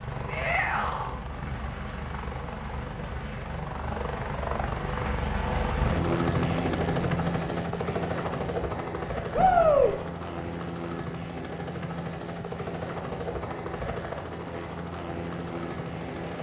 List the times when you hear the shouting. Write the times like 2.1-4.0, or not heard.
0.2-1.1, 9.3-9.9.